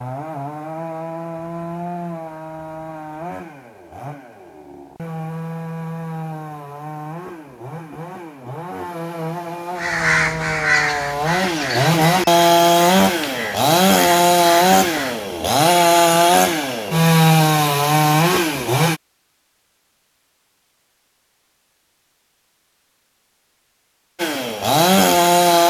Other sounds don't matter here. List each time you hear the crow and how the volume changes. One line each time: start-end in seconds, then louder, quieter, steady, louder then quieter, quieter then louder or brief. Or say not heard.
9.8-15.3 quieter.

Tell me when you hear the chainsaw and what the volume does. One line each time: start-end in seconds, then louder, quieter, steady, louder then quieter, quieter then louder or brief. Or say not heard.
0.0-19.0 louder
24.1-25.6 brief.